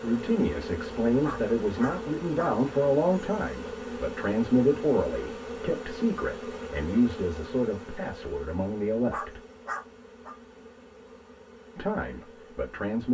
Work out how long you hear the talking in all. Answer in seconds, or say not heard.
11 s.